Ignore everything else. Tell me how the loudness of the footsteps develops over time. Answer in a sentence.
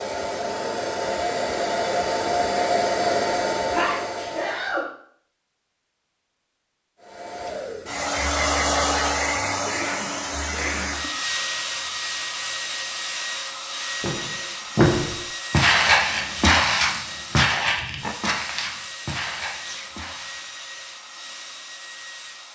The volume of the footsteps goes down.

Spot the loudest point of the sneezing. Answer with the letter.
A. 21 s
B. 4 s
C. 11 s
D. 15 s
B.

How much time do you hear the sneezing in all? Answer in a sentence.
You can hear the sneezing for 3 seconds altogether.